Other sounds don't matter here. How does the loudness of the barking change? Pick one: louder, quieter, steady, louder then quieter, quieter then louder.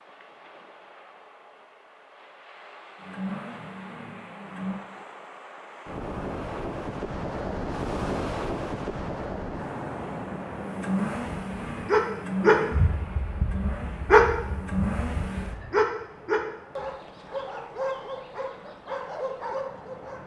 quieter.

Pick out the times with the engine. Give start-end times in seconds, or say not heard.
3.0-4.8, 9.9-15.6.